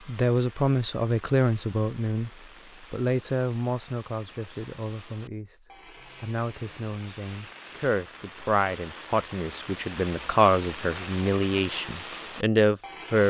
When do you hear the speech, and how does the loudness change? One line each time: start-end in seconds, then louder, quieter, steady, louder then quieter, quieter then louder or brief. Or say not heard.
0.1-13.2 quieter then louder.